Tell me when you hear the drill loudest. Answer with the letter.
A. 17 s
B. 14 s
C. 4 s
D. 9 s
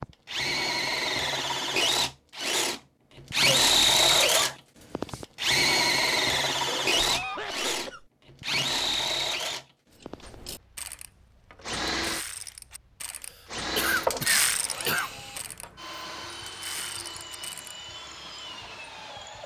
C.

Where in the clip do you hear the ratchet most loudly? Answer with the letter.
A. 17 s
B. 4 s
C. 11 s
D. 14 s
D.